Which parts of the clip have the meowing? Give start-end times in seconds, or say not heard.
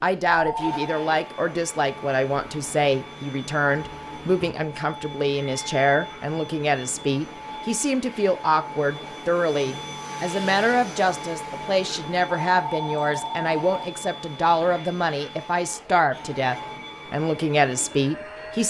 not heard.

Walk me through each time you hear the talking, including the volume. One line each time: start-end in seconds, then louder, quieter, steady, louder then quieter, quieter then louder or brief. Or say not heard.
0.0-18.6 steady.